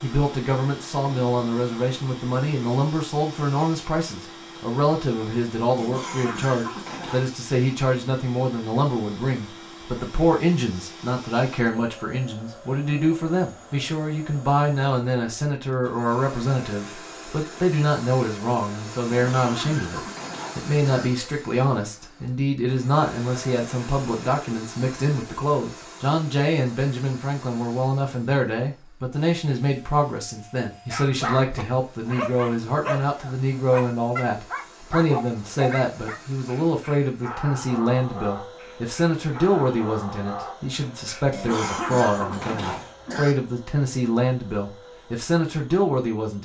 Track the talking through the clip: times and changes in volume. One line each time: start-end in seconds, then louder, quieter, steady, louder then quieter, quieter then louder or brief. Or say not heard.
0.0-46.4 steady.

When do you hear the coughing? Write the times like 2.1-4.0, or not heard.
5.8-7.2, 19.1-21.1, 41.3-43.4.